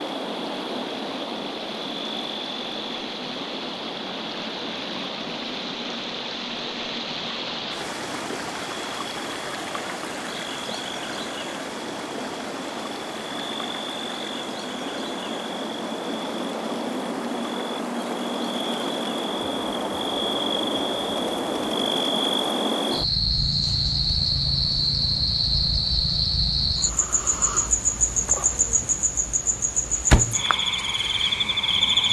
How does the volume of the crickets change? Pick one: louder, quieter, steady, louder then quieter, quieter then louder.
louder.